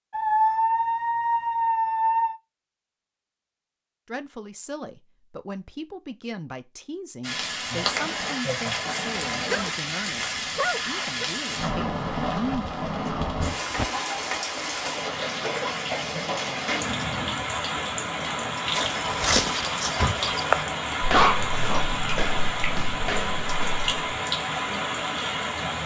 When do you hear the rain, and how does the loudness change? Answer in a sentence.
You can hear the rain from 7.2 to 25.8 s, at a steady volume.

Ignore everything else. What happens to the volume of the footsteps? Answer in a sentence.
The loudness of the footsteps goes down.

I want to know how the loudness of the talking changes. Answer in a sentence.
The volume of the talking stays about the same.